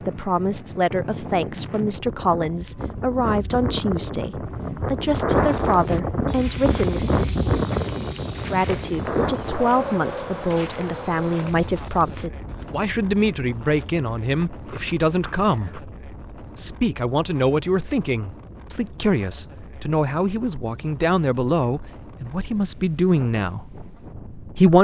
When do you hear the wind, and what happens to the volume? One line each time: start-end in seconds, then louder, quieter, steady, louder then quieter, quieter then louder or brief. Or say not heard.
0.0-24.8 louder then quieter.